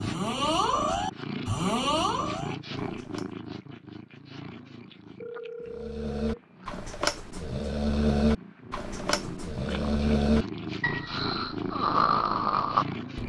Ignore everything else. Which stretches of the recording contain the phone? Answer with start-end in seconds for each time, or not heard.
5.2-6.5.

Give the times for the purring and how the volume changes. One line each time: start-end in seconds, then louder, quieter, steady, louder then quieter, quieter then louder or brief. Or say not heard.
0.0-13.2 quieter then louder.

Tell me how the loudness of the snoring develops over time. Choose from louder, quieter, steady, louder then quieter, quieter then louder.
quieter then louder.